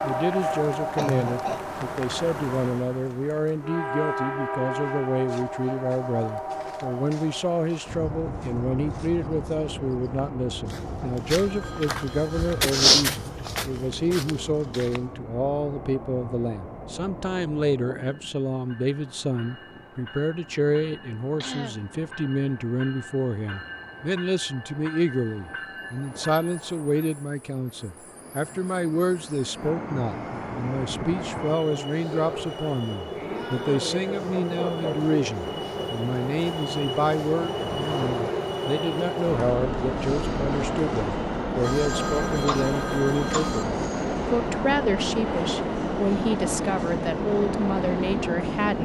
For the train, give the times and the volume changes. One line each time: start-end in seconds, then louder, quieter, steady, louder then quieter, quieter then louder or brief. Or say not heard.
0.0-48.8 quieter then louder.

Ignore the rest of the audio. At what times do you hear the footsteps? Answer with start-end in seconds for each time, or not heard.
4.8-15.1.